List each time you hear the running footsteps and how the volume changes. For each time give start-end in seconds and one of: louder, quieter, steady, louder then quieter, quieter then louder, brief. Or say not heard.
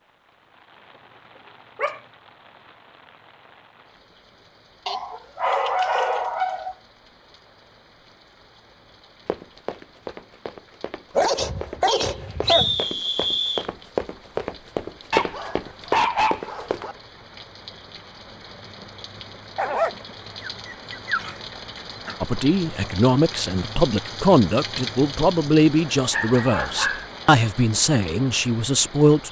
9.2-16.9 louder.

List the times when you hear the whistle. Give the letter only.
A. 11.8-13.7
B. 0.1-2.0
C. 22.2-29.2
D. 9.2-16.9
A.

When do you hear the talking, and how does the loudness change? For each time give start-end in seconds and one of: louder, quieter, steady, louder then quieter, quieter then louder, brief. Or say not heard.
22.2-29.2 steady.